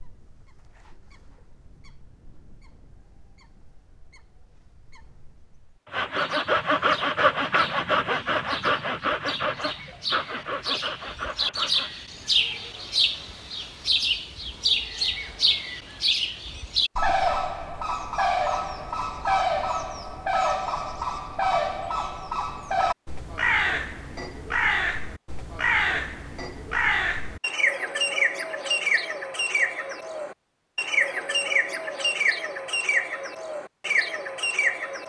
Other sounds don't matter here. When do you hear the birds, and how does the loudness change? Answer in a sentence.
The birds can be heard from 0.0 to 35.0 s, getting louder.